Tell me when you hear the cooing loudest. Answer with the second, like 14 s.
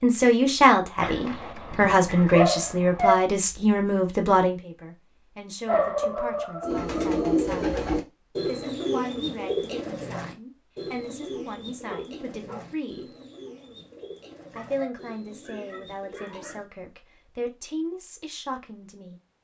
7 s.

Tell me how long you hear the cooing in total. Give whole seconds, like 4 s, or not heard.
10 s.